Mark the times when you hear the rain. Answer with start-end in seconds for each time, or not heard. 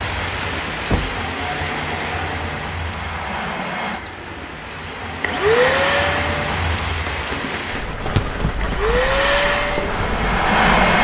0.0-10.7.